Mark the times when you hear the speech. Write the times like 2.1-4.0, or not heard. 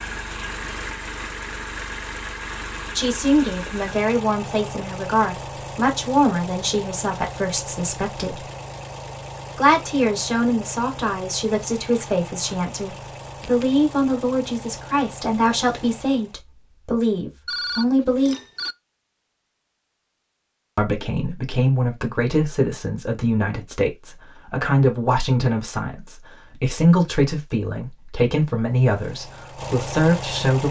3.0-8.4, 9.6-18.4, 20.8-30.6.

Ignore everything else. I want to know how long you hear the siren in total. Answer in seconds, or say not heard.
not heard.